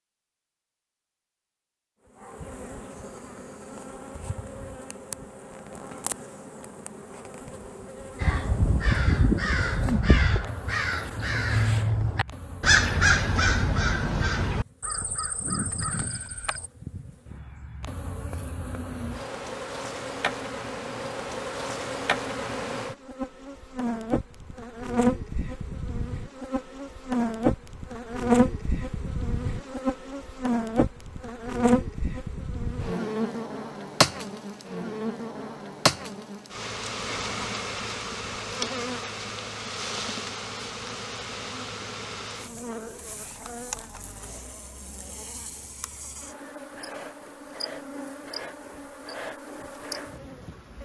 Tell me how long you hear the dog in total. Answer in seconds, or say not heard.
not heard.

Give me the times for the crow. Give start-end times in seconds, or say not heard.
8.2-16.7.